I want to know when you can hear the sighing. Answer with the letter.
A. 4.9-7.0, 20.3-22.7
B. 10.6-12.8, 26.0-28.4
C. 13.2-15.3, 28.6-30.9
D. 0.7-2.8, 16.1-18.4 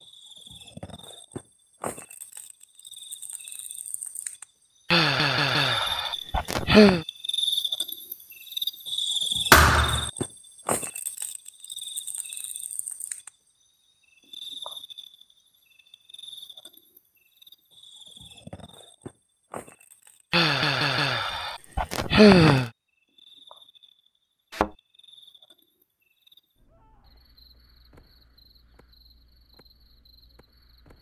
A.